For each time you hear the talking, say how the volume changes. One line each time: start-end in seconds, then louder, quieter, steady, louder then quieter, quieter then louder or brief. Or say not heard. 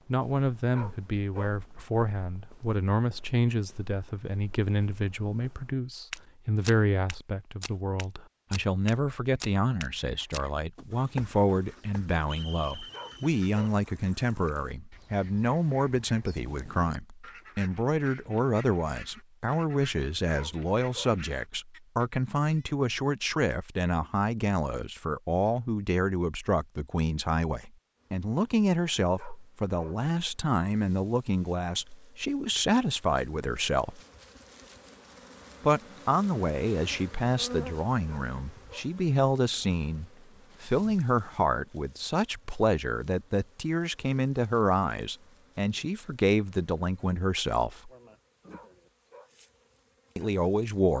0.1-34.0 steady
35.6-47.9 steady
50.1-50.9 brief.